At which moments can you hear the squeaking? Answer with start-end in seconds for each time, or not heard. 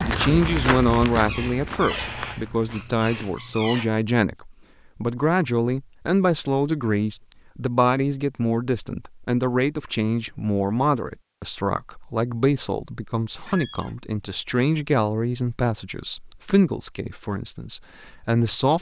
1.2-3.9, 13.4-13.9.